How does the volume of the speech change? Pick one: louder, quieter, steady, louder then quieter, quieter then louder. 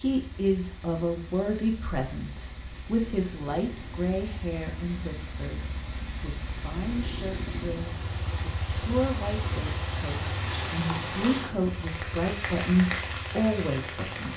quieter then louder.